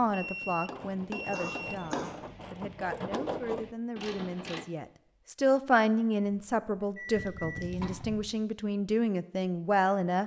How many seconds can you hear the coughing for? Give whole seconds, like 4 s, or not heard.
3 s.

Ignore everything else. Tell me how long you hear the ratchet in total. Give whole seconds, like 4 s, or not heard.
5 s.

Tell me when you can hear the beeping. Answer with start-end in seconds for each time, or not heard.
0.1-1.9, 7.0-7.7.